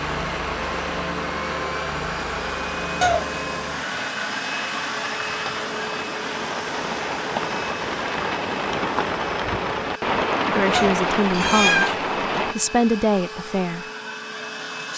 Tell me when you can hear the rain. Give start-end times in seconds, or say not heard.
0.0-12.6.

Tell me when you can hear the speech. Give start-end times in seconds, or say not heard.
10.6-13.8.